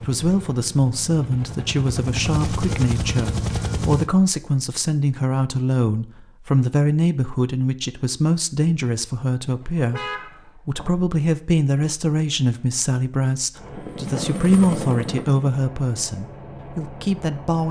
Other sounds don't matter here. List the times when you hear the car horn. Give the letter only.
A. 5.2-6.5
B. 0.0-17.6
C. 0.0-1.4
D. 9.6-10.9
D.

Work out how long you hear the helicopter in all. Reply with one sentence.
You can hear the helicopter for 8 seconds altogether.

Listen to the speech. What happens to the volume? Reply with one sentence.
The loudness of the speech stays about the same.